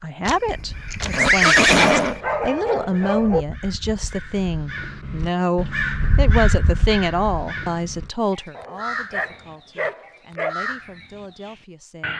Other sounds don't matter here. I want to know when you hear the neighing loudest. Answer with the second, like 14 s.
2 s.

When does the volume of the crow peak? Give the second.
6 s.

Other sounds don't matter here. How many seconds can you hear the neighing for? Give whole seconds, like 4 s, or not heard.
2 s.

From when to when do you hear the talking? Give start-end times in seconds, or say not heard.
0.0-12.1.